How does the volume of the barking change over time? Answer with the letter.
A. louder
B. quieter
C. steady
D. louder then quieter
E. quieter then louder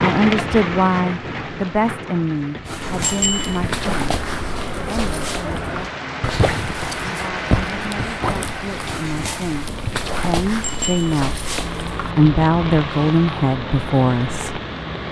C.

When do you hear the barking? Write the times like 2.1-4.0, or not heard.
2.6-12.2.